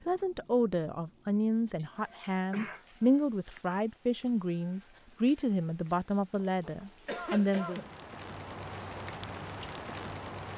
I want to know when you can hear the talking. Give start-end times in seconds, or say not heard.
0.1-7.8.